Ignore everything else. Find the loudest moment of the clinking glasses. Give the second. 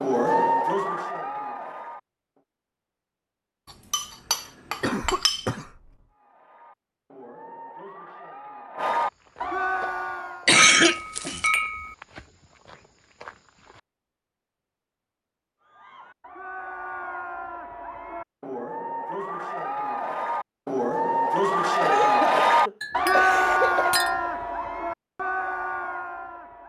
11 s.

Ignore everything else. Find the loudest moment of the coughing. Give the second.
11 s.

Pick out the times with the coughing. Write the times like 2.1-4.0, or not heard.
4.8-5.9, 10.4-11.5, 21.8-23.9.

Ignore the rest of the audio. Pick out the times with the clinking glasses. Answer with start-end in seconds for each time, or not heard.
3.9-5.5, 10.6-11.9, 22.8-24.4.